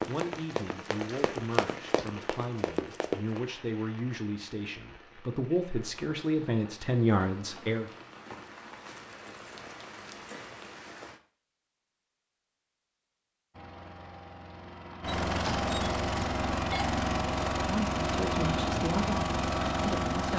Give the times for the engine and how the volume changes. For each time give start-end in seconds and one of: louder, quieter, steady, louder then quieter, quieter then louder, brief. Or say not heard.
13.5-20.3 louder.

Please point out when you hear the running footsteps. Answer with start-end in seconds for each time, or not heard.
0.0-3.4.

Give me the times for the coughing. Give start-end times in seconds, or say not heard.
not heard.